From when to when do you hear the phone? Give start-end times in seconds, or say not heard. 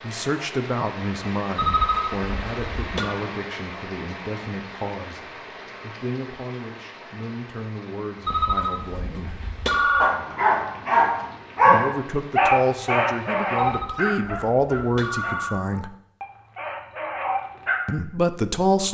1.6-3.1, 8.2-10.2, 13.6-15.6.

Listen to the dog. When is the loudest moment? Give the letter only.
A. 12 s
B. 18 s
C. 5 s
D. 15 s
A.